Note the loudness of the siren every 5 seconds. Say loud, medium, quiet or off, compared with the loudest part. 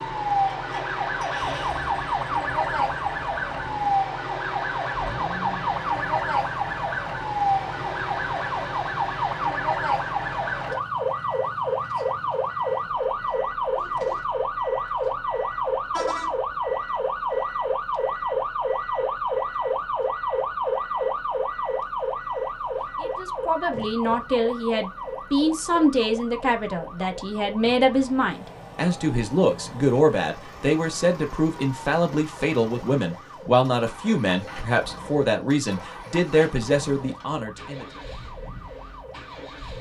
loud, loud, loud, loud, loud, quiet, quiet, quiet.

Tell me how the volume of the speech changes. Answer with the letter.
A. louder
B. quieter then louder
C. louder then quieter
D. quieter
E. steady
E.